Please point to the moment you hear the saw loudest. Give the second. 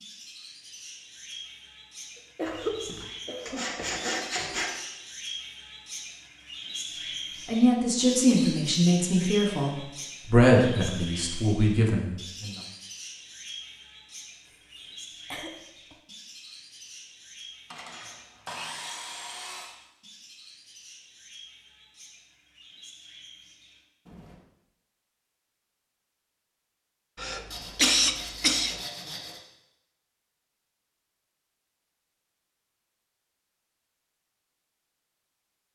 4 s.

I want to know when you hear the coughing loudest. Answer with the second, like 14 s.
28 s.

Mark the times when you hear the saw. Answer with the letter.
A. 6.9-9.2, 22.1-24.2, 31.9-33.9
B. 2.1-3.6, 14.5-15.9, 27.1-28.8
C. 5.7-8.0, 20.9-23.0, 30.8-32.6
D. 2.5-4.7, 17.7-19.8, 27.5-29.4
D.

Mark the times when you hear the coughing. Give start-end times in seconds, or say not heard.
2.1-3.6, 14.5-15.9, 27.1-28.8.